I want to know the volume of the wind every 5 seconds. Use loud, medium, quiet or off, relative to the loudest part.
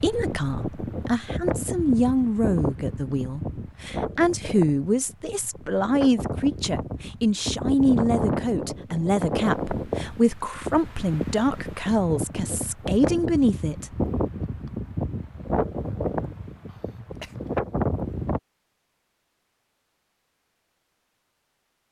loud, loud, loud, loud, off.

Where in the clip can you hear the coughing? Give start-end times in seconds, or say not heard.
16.6-17.4.